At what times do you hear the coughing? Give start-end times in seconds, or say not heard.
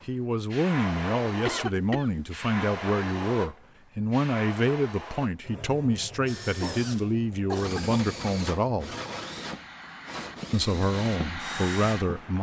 1.4-2.6, 6.5-8.1.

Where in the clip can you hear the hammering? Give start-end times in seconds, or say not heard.
not heard.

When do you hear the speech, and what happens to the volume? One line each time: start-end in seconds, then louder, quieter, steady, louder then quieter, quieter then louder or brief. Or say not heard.
0.1-8.9 steady
10.5-12.3 brief.